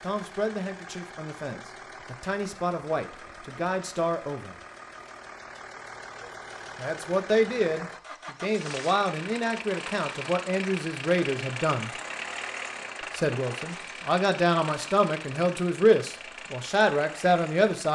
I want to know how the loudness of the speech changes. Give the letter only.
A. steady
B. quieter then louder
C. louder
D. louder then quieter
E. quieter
C.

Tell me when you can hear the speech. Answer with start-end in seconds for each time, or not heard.
0.0-4.5, 6.8-11.9, 13.2-17.9.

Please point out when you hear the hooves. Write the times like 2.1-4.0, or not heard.
not heard.